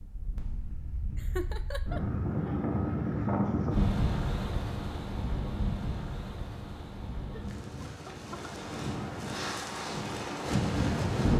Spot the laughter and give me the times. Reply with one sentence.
The laughter can be heard from 1.1 to 2.0 s and from 7.3 to 8.5 s.